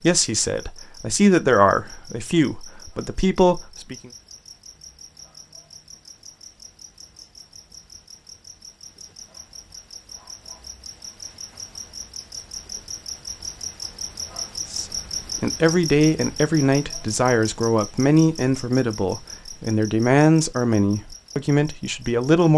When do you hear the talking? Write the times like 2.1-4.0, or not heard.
0.0-4.1, 14.7-22.5.